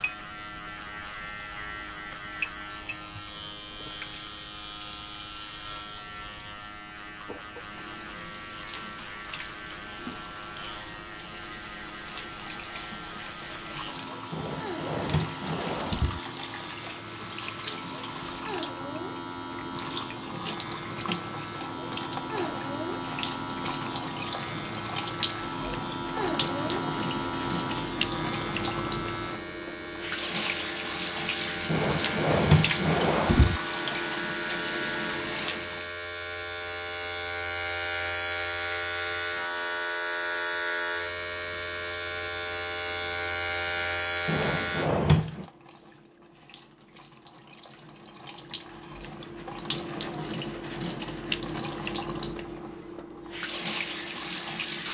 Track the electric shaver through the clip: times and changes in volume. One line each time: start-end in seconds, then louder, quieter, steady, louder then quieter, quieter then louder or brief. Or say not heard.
0.0-44.9 louder.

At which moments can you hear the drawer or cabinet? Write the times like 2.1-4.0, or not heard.
14.3-16.2, 31.6-33.6, 44.2-45.5.